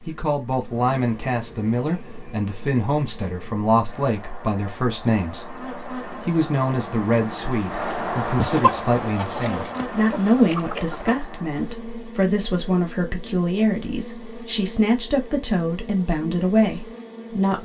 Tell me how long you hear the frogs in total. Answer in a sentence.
You can't hear the frogs here.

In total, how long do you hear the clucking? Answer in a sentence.
The clucking can be heard for 3 seconds in total.